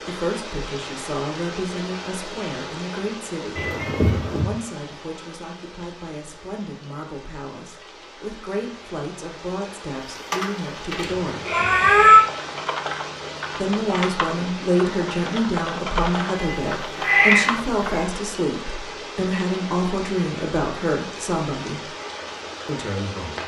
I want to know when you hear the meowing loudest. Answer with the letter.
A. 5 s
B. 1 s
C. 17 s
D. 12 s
D.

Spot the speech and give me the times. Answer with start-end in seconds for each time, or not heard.
0.0-11.6, 13.5-21.9, 22.6-23.4.